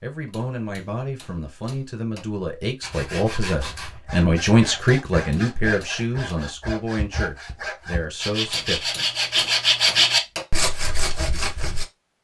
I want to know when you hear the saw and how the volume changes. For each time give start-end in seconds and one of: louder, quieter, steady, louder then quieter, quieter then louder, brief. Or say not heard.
2.8-11.8 louder.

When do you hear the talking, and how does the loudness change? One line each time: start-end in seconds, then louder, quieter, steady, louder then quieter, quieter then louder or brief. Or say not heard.
0.0-9.4 louder then quieter.